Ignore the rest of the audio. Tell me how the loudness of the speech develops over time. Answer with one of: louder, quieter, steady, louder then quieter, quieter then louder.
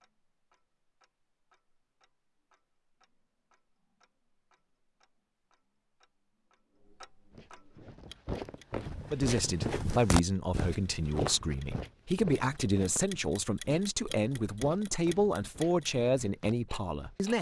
steady.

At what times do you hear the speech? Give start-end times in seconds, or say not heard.
9.1-17.3.